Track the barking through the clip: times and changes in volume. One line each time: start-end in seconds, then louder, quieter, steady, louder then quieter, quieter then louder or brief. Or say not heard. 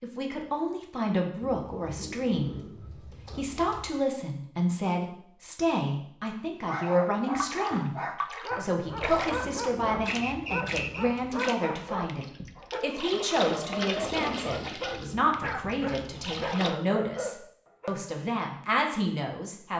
6.6-18.0 steady.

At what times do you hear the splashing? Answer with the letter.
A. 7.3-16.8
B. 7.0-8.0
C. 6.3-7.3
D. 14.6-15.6
A.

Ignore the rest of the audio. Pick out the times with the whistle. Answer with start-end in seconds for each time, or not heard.
10.1-11.1.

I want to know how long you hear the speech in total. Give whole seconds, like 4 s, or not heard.
18 s.